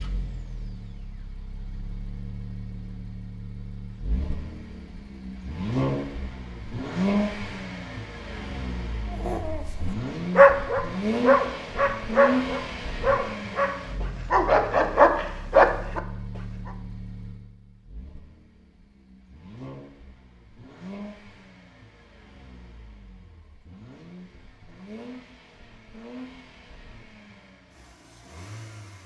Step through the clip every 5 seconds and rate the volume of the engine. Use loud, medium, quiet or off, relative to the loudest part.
medium, loud, loud, quiet, quiet, quiet.